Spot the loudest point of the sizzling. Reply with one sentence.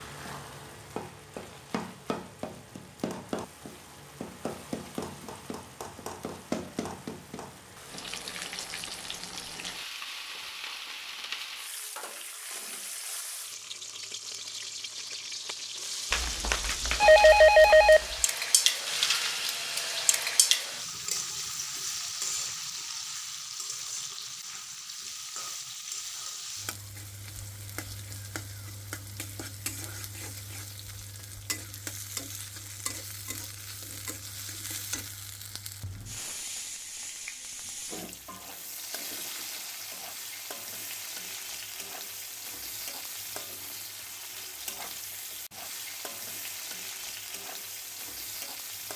The loudest moment of the sizzling is at 19 seconds.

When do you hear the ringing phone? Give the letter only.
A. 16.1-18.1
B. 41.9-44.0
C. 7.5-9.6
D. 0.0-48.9
A.